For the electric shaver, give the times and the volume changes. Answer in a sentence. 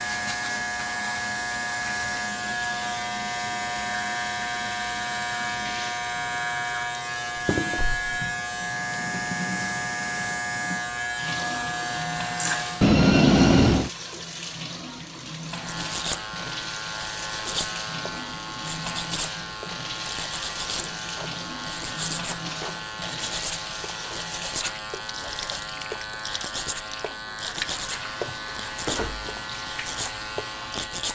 The electric shaver can be heard from 0.0 to 12.9 s, at a steady volume; and from 15.5 to 31.0 s, at a steady volume.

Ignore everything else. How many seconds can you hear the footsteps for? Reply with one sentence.
The footsteps can't be heard in this clip.